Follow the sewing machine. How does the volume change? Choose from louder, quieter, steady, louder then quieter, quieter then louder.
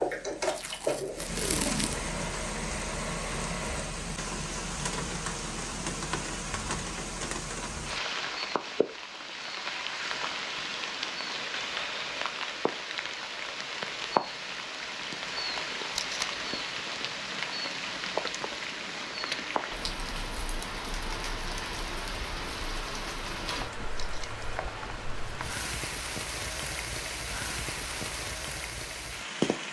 quieter.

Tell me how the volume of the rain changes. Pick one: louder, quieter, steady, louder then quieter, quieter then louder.
steady.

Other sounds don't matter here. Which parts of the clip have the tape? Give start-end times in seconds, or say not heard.
0.6-2.1, 15.9-16.4, 23.9-24.4.